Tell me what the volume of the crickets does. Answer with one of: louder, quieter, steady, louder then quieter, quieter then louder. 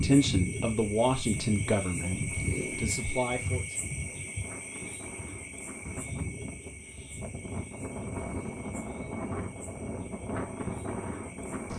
quieter.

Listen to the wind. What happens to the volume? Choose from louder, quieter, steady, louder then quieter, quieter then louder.
louder.